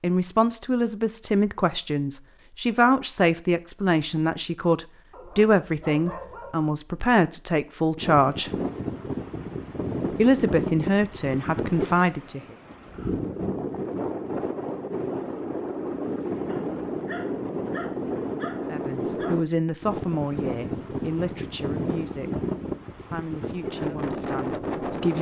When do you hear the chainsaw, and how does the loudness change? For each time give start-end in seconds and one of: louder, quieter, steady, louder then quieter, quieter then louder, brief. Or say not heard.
not heard.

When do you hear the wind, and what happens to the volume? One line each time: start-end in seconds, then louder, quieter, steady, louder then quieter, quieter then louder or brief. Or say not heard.
8.0-25.1 steady.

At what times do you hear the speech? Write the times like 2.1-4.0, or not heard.
0.0-8.5, 10.2-12.4, 18.7-22.3, 23.1-25.1.